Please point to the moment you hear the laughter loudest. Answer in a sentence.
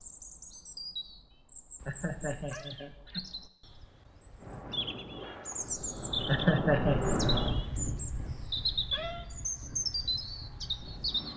The loudest moment of the laughter is at 7 seconds.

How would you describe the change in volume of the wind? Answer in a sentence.
The volume of the wind goes up, then down.